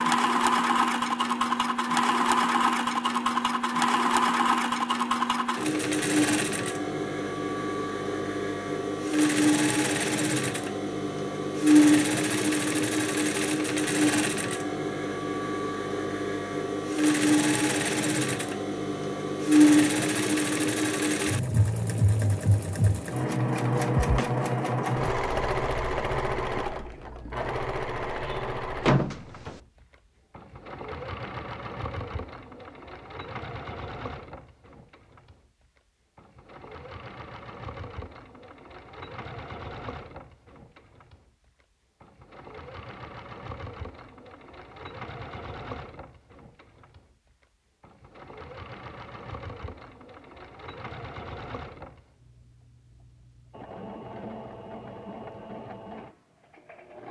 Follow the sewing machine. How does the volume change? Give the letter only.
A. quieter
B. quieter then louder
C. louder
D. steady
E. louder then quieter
A.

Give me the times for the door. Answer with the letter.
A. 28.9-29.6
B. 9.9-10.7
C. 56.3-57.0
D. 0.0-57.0
A.